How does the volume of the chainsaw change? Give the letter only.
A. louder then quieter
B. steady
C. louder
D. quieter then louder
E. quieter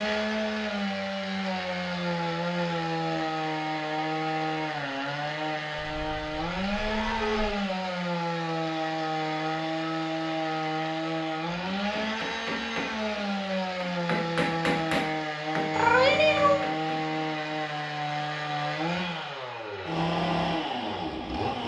B.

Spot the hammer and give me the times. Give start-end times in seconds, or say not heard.
11.5-17.2.